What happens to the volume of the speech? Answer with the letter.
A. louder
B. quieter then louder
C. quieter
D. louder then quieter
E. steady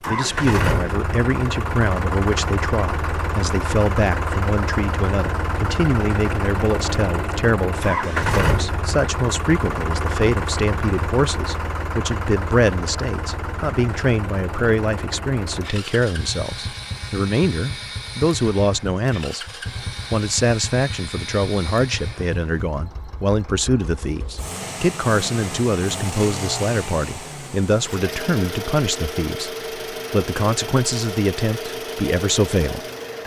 E.